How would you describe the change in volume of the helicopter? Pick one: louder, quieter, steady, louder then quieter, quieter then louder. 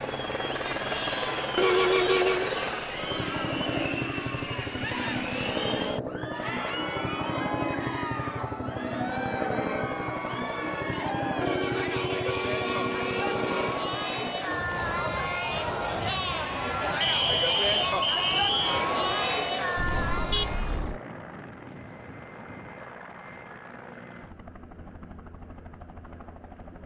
quieter.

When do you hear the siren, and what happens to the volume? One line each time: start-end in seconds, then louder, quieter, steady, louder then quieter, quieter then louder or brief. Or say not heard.
not heard.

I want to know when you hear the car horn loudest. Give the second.
2 s.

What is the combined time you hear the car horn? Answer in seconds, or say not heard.
5 s.